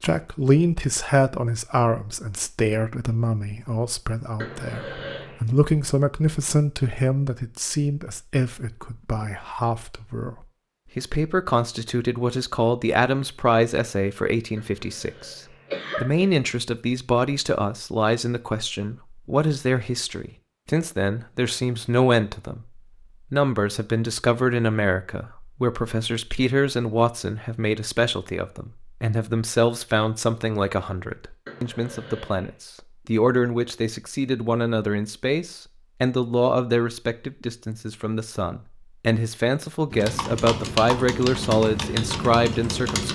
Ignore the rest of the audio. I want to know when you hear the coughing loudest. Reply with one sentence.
The loudest moment of the coughing is at 16 seconds.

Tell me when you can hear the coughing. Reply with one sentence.
You can hear the coughing from 4.3 to 5.4 s, from 14.6 to 16.3 s and from 31.4 to 32.5 s.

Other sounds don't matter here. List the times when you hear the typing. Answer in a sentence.
The typing can be heard from 39.9 to 43.0 s.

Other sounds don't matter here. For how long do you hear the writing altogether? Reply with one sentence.
The writing can't be heard in this clip.